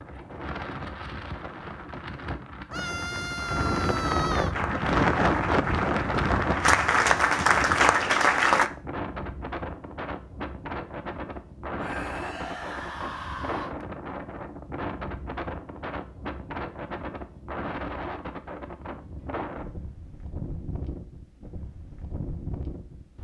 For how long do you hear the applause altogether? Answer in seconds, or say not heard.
4 s.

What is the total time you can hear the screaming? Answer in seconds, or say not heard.
4 s.